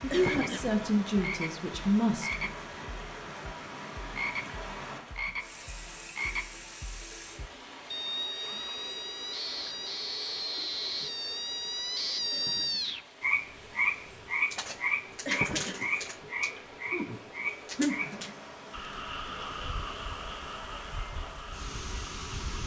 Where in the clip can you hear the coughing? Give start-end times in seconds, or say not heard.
0.1-0.8, 12.3-12.9, 15.2-15.9.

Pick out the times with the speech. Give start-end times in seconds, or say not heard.
0.0-2.5.